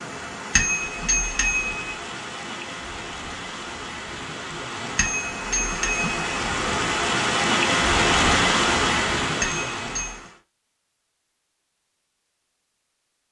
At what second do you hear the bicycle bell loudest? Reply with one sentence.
The volume of the bicycle bell peaks at 1 second.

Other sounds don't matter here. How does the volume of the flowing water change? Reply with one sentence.
The loudness of the flowing water goes up.